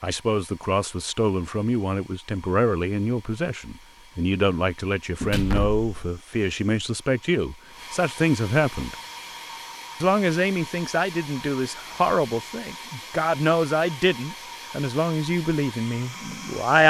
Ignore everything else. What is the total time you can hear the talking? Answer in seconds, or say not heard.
16 s.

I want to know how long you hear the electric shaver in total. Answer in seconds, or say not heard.
not heard.